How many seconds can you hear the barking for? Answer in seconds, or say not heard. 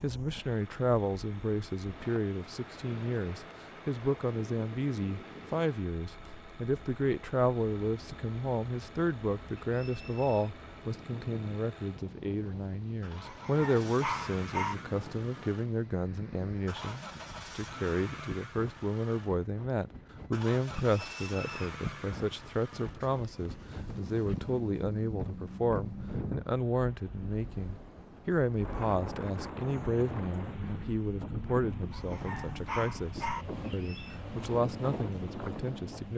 3 s.